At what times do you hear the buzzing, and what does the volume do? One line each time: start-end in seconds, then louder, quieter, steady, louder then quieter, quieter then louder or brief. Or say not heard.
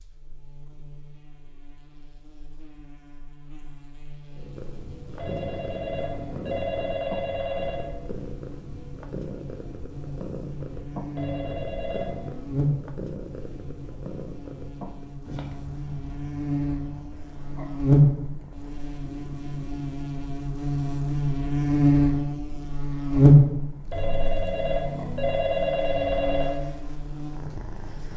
0.0-28.1 louder.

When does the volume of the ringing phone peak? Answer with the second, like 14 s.
26 s.